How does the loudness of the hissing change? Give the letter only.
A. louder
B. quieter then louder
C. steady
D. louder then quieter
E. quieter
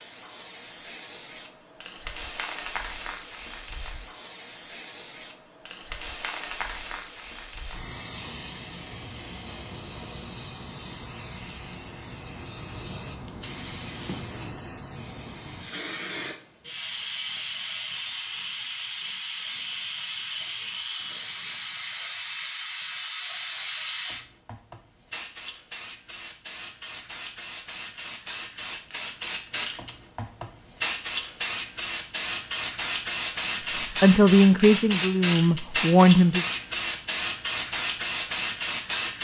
A.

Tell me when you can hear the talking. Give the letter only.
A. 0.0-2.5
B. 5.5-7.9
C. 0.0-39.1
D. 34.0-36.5
D.